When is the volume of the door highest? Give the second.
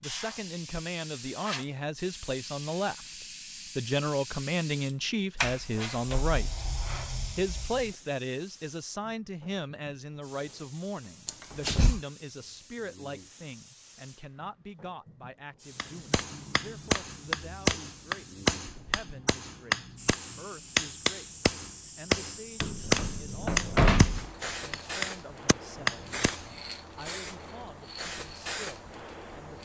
24 s.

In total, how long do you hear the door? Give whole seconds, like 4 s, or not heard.
5 s.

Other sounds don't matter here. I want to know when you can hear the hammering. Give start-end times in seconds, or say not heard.
15.8-26.5.